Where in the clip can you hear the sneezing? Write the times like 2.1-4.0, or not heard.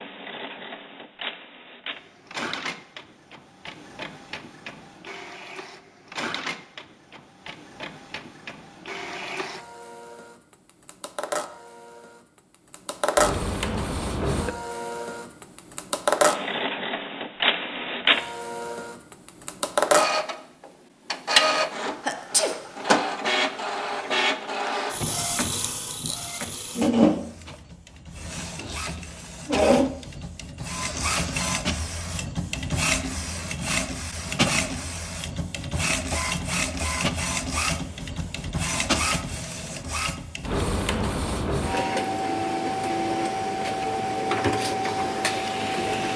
22.1-22.6.